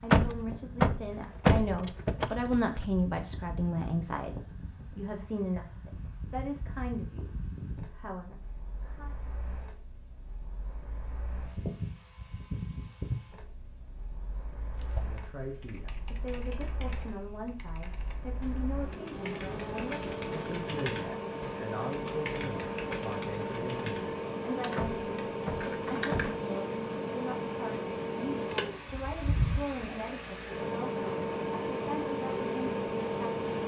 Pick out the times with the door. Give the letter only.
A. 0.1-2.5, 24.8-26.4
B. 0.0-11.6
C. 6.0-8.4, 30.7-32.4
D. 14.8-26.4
A.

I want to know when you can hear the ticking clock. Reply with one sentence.
The ticking clock can't be heard in this clip.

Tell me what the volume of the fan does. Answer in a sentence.
The loudness of the fan goes up.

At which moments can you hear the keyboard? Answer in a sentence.
You can hear the keyboard from 14.8 to 26.4 s.